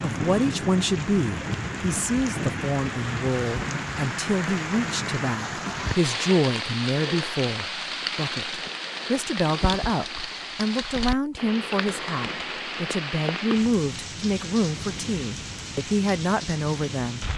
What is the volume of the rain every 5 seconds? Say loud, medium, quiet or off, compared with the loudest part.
loud, loud, loud, medium.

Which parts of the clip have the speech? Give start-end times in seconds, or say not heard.
0.0-17.2.